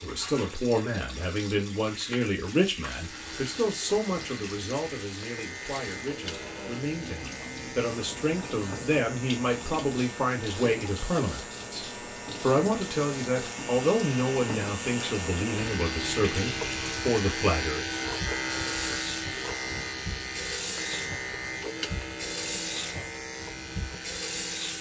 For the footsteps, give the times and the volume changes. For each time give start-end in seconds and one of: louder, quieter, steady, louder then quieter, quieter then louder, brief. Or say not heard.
not heard.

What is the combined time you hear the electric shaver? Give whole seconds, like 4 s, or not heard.
22 s.